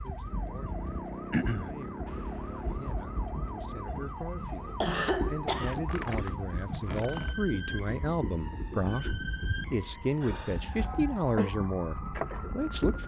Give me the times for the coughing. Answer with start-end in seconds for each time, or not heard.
1.3-1.8, 4.8-5.8, 10.2-11.5.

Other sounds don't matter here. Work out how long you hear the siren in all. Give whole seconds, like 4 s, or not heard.
13 s.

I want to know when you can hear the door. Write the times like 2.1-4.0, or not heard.
5.7-7.5.